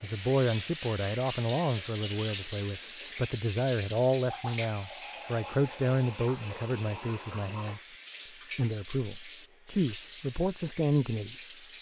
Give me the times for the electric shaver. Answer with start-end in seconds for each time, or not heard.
not heard.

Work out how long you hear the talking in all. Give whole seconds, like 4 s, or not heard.
11 s.